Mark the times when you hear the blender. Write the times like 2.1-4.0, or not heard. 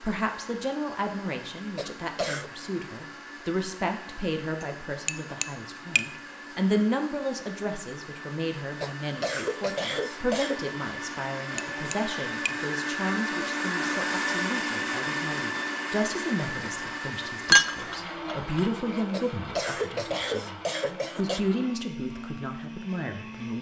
0.0-23.5.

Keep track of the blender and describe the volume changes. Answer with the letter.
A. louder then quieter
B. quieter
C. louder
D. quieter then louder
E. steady
A.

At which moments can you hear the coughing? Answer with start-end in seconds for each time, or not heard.
1.8-2.5, 8.8-10.7, 19.1-21.4.